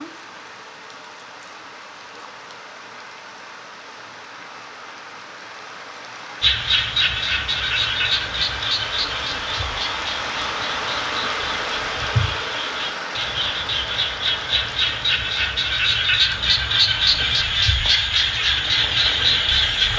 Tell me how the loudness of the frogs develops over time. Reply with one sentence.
The volume of the frogs goes down, then up.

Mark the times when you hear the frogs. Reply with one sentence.
The frogs can be heard from 6.4 to 19.9 s.